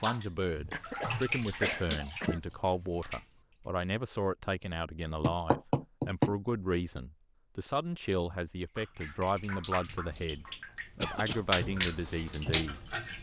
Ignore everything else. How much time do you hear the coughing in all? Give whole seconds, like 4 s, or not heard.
2 s.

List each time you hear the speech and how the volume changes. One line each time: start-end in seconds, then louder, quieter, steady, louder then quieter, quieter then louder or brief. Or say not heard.
0.0-12.8 steady.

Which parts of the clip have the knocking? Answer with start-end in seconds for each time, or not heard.
5.2-6.3.